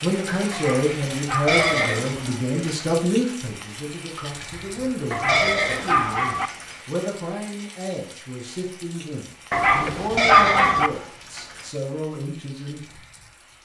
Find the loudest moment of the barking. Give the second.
10 s.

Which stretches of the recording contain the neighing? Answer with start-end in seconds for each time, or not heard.
1.4-3.0, 5.2-6.8, 10.2-11.7.